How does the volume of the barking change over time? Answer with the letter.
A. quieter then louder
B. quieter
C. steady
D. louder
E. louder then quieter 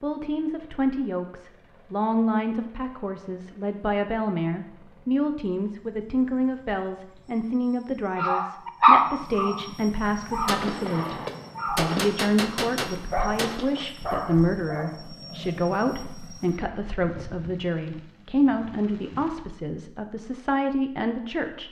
B.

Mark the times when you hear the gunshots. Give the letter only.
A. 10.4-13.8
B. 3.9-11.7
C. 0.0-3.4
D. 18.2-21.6
A.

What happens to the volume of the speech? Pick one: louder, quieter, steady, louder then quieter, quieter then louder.
steady.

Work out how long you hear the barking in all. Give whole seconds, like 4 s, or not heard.
8 s.